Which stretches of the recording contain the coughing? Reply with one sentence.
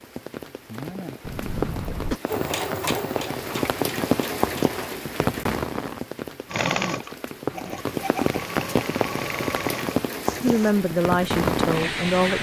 You can hear the coughing from 1.2 to 2.2 s.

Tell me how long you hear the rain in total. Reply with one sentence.
You can hear the rain for 12 seconds altogether.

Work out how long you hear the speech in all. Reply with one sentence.
The speech can be heard for 2 seconds in total.